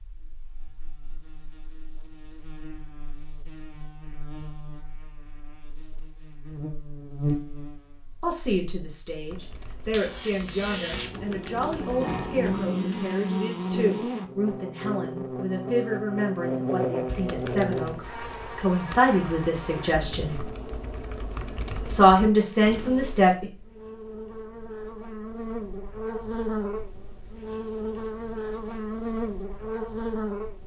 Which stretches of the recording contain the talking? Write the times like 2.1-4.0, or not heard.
8.2-20.5, 21.9-23.4.